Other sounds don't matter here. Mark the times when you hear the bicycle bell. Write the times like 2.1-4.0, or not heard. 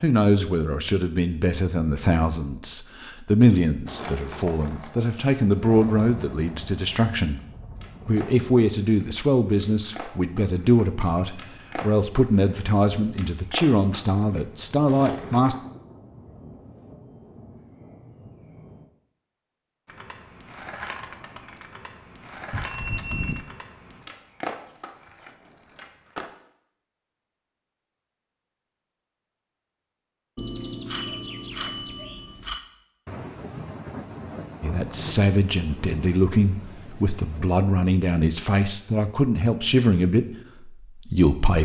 11.0-11.9, 22.5-23.4, 30.4-32.6.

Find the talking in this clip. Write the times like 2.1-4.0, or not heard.
0.0-7.4, 8.1-15.6, 34.6-41.6.